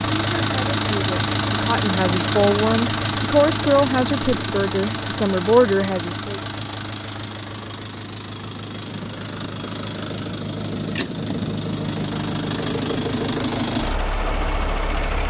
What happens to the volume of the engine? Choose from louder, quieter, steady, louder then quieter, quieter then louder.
quieter then louder.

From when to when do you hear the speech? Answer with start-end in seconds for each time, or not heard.
0.2-6.4.